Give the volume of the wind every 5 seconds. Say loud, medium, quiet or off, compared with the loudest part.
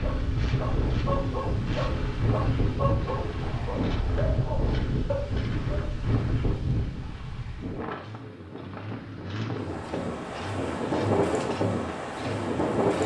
loud, medium, loud.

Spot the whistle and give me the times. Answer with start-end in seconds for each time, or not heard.
not heard.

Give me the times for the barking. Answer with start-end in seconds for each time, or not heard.
0.0-6.0.